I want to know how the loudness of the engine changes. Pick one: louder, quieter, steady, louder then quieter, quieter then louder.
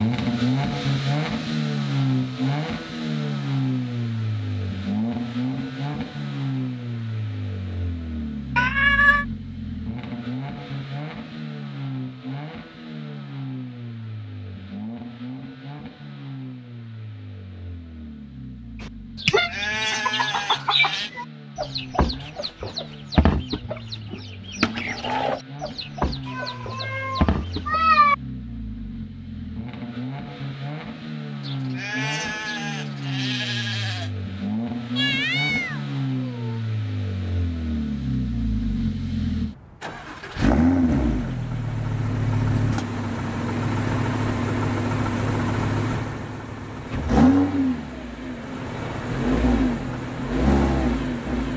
quieter then louder.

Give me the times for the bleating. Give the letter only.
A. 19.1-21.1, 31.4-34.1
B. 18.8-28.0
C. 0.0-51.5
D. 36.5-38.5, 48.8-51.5
A.